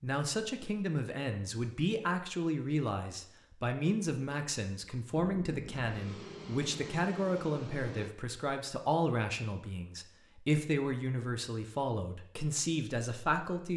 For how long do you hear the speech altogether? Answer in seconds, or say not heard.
14 s.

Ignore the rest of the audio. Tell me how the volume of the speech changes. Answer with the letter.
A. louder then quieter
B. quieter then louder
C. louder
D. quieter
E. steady
E.